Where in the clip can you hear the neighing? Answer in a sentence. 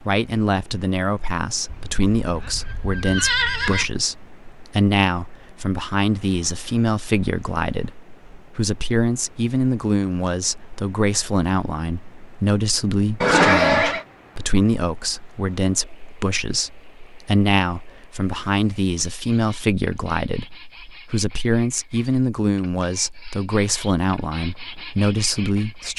You can hear the neighing from 1.6 to 3.9 s and from 13.2 to 14.1 s.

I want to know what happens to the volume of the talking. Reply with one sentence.
The volume of the talking stays about the same.